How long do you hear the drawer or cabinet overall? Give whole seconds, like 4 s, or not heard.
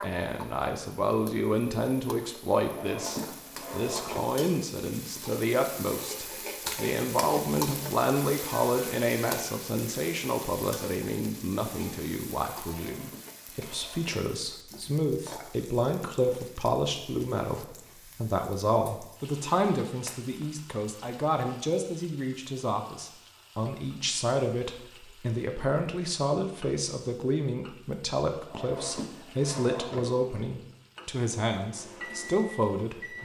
5 s.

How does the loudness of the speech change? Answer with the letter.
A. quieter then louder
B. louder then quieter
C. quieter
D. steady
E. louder
D.